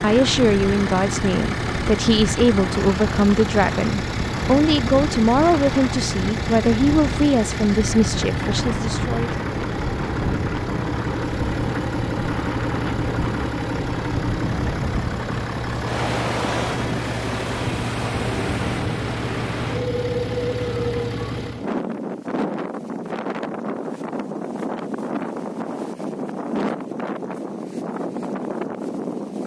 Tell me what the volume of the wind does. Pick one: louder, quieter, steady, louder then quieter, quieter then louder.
steady.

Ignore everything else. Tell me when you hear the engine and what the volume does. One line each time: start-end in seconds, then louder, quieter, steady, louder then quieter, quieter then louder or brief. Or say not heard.
0.0-21.7 steady.